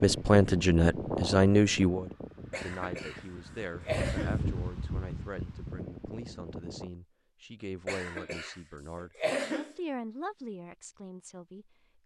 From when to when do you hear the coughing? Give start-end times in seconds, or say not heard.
2.5-4.4, 7.8-9.8.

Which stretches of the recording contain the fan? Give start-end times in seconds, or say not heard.
0.0-6.9.